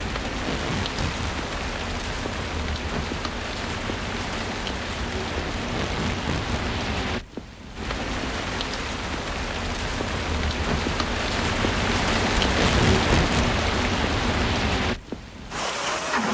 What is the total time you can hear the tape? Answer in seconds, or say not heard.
3 s.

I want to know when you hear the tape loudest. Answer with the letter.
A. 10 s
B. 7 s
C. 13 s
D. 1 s
C.